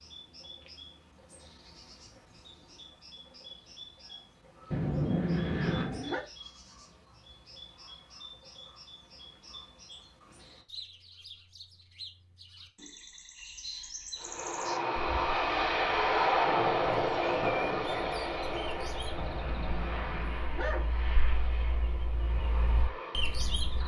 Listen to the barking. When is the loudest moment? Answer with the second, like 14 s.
5 s.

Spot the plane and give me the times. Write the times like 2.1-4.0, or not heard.
14.2-23.8.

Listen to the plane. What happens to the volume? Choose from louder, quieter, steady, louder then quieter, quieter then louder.
quieter.